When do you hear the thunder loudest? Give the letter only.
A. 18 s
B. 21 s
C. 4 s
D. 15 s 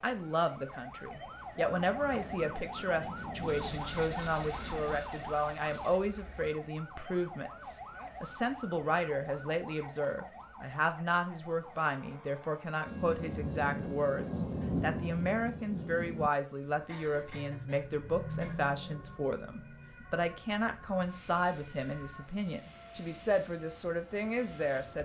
D.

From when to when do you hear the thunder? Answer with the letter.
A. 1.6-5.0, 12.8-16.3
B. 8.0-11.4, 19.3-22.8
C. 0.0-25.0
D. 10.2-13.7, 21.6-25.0
A.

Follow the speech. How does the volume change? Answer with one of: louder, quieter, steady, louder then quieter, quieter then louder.
steady.